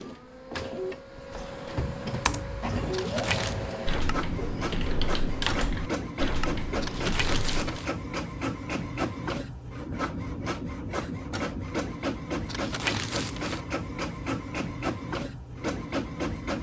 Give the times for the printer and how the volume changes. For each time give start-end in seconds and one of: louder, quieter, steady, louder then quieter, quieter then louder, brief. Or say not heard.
0.0-16.5 steady.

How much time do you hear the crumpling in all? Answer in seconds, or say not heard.
3 s.